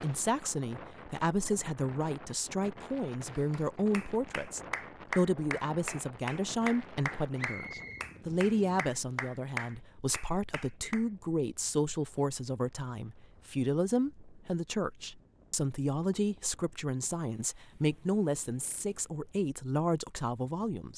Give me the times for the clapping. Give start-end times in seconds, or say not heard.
3.3-11.1.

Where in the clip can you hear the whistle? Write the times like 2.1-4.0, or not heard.
7.3-8.1.